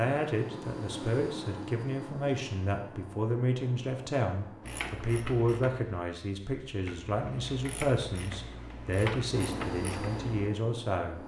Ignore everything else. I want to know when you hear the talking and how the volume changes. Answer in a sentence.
You can hear the talking from 0.0 to 11.2 s, at a steady volume.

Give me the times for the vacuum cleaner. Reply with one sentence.
You can hear the vacuum cleaner from 0.0 to 4.8 s and from 9.3 to 11.2 s.